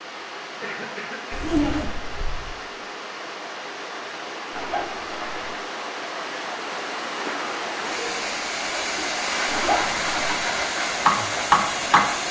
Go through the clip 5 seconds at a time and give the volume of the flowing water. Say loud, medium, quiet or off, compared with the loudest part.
medium, loud, loud.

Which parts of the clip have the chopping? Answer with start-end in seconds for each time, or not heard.
9.8-12.2.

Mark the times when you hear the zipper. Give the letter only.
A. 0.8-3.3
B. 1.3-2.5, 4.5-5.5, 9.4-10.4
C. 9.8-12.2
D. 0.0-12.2
B.